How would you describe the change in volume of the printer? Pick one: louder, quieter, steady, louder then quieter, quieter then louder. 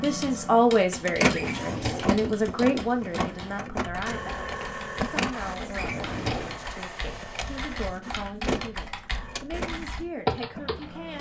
quieter.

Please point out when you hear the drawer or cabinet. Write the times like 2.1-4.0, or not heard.
1.3-2.2, 5.8-6.6.